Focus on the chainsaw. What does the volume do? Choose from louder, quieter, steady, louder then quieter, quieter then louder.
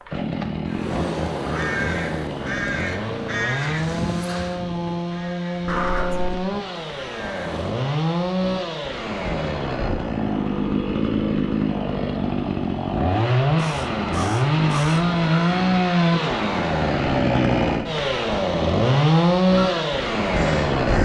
louder.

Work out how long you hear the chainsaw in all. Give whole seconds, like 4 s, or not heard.
21 s.